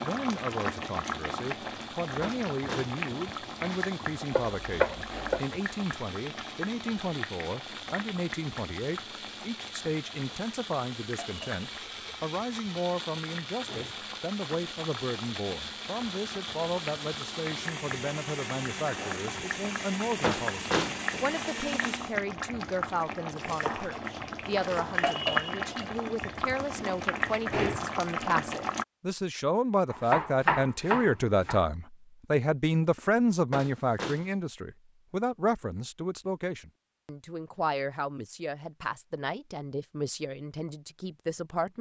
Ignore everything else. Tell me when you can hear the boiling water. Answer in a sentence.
The boiling water can be heard from 0.0 to 28.9 s.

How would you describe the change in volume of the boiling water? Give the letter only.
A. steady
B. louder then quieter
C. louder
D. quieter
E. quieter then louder
E.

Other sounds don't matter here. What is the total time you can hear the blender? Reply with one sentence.
You can hear the blender for 22 seconds altogether.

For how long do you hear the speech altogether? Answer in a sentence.
The speech can be heard for 42 seconds in total.